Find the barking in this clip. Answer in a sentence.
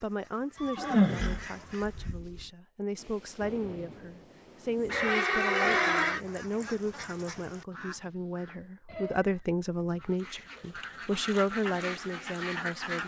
You can't hear the barking here.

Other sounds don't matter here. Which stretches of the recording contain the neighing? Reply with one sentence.
You can hear the neighing from 0.6 to 2.5 s, from 4.9 to 6.2 s and from 8.8 to 10.9 s.